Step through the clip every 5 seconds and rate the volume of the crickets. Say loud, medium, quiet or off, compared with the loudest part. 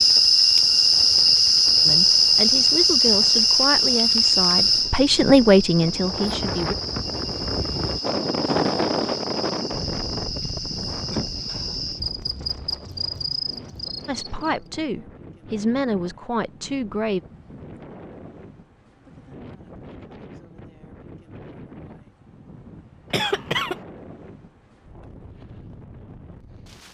loud, quiet, quiet, off, off, off.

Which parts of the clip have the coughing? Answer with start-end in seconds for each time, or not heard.
11.1-11.7, 23.1-23.8.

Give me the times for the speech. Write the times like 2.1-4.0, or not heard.
1.9-6.8, 14.1-17.2.